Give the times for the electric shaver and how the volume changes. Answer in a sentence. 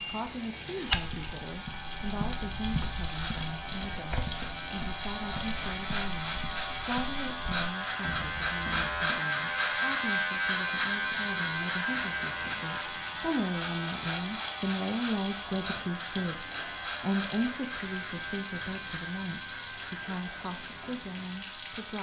The electric shaver can be heard from 0.0 to 21.9 s, getting louder then quieter.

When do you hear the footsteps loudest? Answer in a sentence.
The loudest moment of the footsteps is at 1 second.